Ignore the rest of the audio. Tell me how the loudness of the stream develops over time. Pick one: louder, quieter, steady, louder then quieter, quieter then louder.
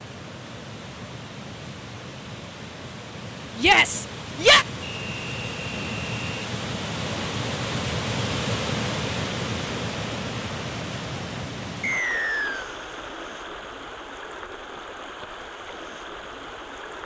louder then quieter.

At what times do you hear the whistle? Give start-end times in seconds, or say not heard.
4.8-6.5, 11.8-12.7.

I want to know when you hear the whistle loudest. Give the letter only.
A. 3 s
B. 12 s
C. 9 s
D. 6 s
B.